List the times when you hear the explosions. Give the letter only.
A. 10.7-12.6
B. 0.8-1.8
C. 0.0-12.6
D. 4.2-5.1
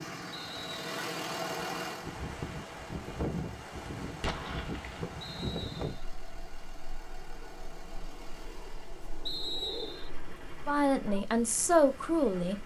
D.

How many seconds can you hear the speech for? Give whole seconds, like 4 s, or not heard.
2 s.